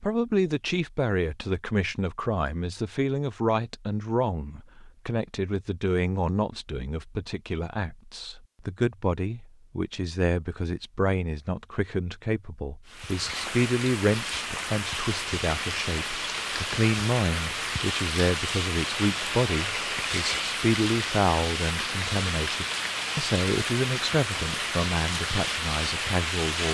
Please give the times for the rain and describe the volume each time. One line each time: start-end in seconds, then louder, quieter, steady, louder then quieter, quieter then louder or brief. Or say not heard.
12.8-26.7 steady.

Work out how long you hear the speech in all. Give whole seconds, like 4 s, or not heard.
27 s.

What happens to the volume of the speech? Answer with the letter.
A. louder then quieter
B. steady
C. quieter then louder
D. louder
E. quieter
B.